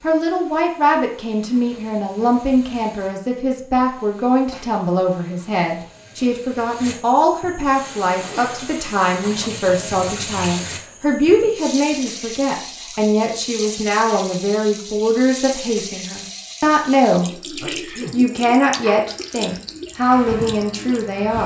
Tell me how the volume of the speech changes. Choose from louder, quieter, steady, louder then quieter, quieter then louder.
steady.